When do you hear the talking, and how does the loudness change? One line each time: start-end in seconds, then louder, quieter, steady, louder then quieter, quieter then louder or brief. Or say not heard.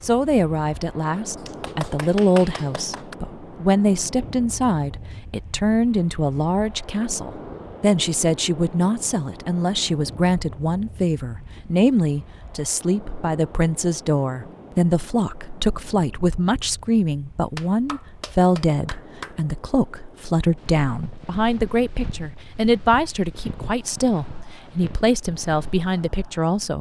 0.0-26.7 steady.